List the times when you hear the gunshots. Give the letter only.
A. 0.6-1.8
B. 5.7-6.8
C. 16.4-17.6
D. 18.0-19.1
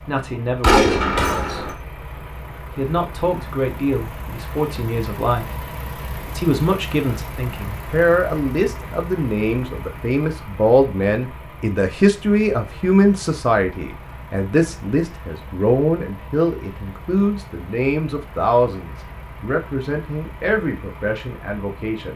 A.